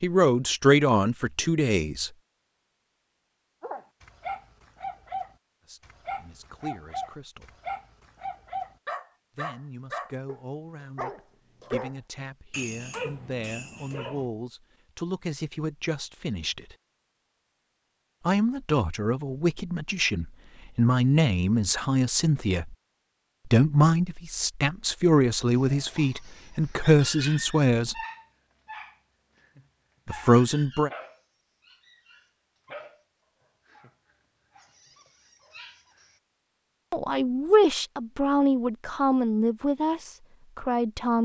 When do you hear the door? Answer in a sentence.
You can't hear the door here.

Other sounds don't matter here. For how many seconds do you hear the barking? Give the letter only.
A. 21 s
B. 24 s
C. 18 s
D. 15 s
A.